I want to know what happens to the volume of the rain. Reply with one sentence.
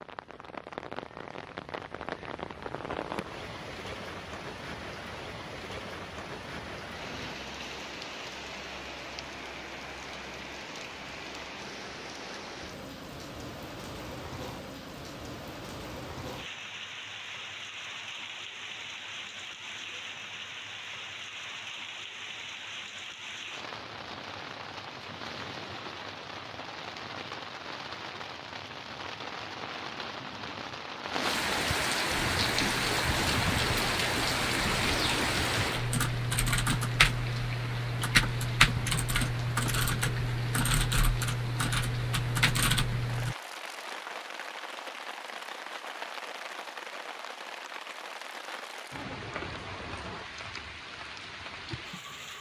The loudness of the rain goes up, then down.